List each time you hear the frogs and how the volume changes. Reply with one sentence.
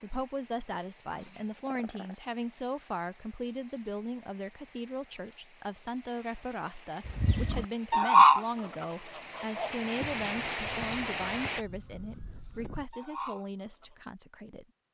You can't hear the frogs here.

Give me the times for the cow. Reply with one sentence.
You can't hear the cow here.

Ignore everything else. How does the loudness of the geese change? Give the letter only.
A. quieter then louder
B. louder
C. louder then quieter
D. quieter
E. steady
A.